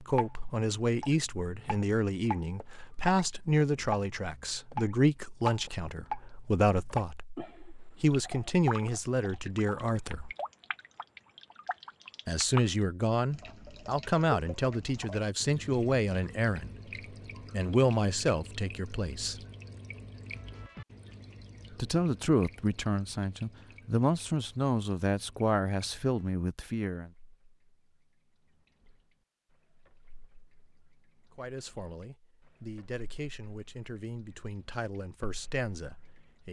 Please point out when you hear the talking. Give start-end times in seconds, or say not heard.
0.0-10.3, 12.2-16.7, 17.5-19.4, 21.7-27.1, 31.4-36.4.